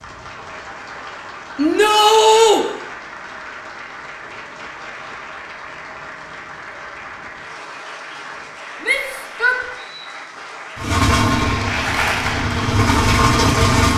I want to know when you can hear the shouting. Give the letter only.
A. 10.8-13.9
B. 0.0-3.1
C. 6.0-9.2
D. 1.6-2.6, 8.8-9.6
D.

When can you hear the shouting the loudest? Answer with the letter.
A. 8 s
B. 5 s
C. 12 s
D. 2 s
D.